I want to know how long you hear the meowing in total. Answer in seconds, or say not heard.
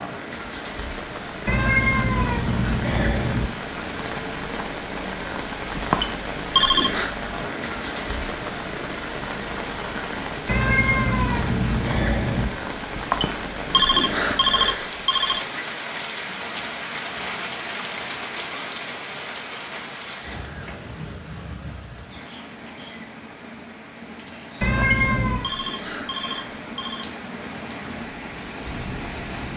5 s.